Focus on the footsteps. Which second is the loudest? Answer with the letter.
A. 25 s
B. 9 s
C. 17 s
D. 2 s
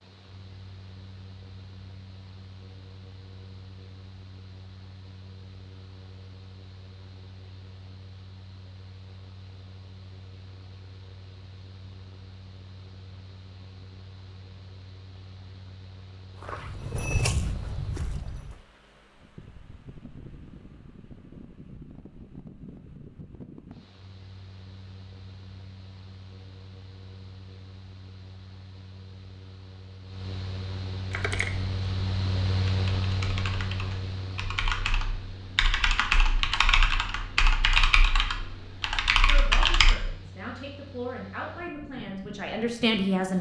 C.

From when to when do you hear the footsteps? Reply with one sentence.
You can hear the footsteps from 16.4 to 18.6 s.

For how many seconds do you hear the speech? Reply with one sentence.
The speech can be heard for 4 seconds in total.